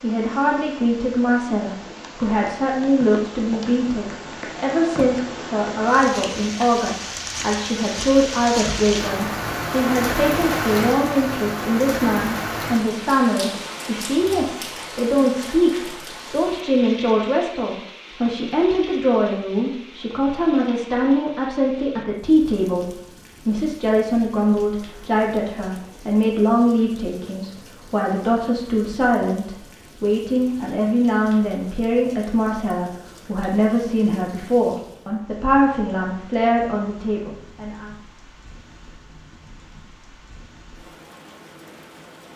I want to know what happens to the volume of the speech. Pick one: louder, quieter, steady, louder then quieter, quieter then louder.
steady.